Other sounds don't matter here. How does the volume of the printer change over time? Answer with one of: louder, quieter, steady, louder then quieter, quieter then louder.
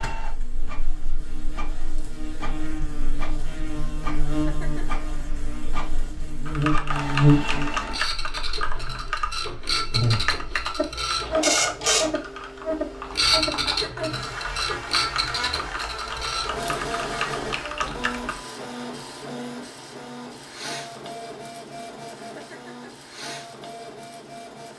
louder then quieter.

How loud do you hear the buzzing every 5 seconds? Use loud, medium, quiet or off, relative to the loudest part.
medium, loud, loud, medium, off.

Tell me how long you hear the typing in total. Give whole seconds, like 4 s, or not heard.
12 s.